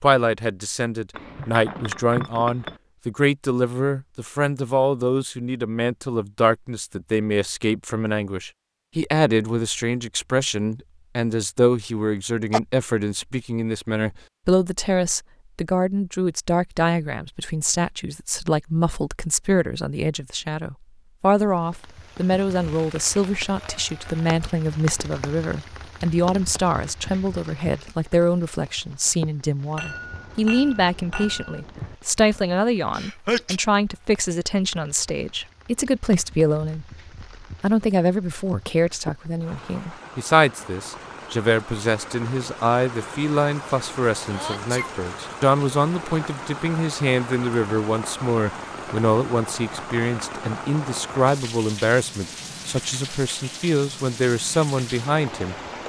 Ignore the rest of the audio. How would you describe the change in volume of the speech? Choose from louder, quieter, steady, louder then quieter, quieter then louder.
steady.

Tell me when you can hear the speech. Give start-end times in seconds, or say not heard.
0.0-55.5.